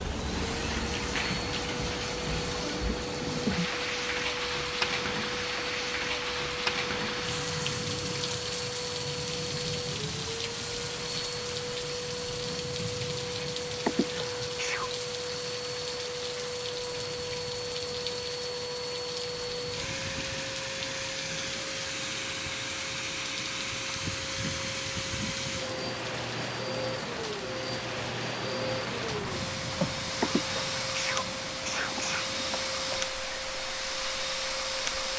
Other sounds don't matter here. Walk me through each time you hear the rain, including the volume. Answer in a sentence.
The rain can be heard from 0.0 to 35.1 s, getting quieter.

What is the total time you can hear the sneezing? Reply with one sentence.
The sneezing can be heard for 3 seconds in total.